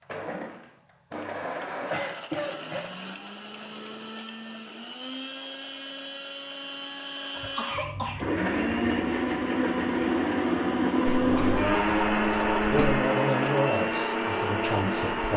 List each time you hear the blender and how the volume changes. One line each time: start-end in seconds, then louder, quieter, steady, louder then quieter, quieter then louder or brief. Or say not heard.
0.0-15.3 louder.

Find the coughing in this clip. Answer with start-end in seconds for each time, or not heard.
1.6-2.9, 7.3-8.2, 11.1-13.1.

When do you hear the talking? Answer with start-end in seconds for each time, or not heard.
11.0-15.3.